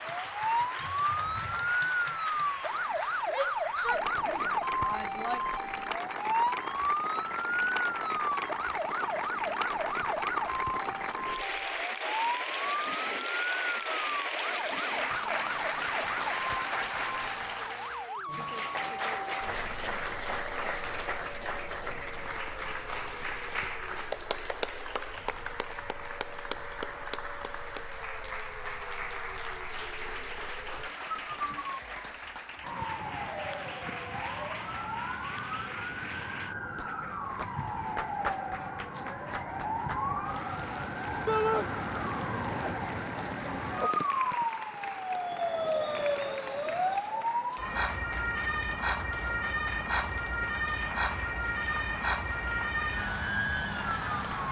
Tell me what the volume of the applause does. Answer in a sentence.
The volume of the applause goes down.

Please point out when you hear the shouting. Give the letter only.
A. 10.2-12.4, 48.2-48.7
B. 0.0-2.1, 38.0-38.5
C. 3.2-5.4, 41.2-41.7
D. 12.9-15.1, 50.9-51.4
C.